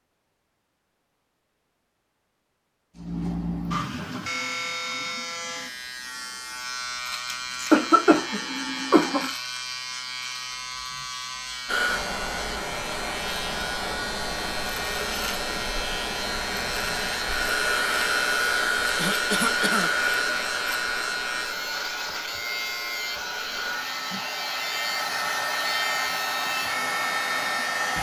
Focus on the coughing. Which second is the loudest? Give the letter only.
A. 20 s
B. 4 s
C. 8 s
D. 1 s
C.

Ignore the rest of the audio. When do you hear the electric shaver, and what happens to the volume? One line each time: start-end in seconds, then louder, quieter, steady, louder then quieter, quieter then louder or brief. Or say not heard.
3.0-27.9 steady.